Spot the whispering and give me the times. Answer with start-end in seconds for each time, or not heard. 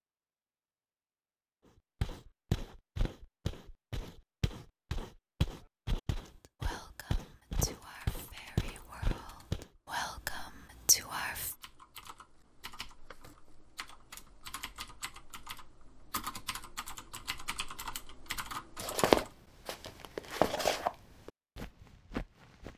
6.2-11.6.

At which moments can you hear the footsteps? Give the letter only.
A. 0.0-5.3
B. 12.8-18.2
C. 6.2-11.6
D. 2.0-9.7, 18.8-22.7
D.